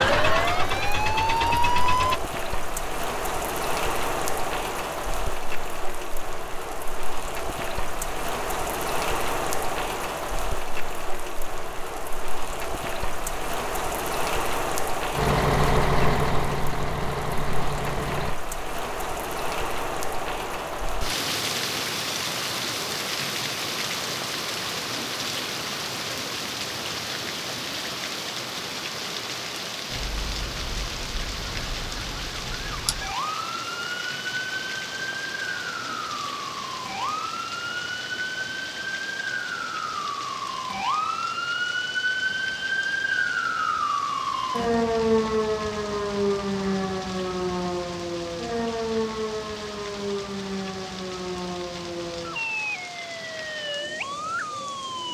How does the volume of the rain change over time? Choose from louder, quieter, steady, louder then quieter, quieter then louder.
quieter.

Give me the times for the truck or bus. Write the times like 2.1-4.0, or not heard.
15.1-18.4.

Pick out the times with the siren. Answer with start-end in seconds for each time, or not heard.
0.0-2.2, 29.9-55.1.